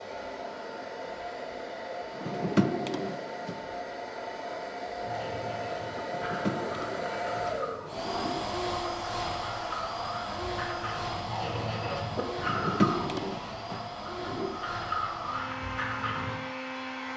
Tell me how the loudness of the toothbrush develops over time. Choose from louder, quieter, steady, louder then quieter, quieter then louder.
louder.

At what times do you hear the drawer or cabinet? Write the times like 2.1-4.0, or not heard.
2.1-3.5, 6.0-8.4, 12.3-14.6.